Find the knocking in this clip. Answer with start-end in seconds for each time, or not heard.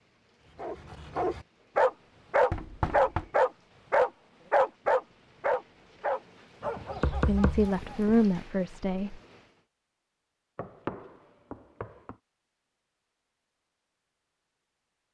2.5-3.3, 7.0-8.2, 10.6-12.2.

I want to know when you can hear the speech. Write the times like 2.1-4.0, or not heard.
7.2-9.2.